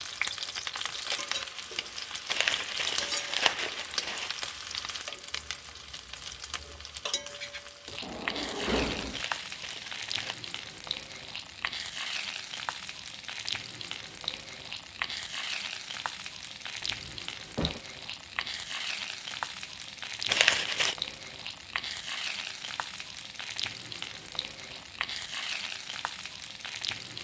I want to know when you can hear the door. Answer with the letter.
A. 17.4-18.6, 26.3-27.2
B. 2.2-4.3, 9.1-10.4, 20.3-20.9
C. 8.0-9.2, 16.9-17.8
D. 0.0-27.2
C.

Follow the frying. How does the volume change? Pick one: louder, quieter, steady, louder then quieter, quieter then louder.
steady.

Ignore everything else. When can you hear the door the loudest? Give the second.
9 s.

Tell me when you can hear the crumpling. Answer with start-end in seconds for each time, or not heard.
2.2-4.3, 9.1-10.4, 20.3-20.9.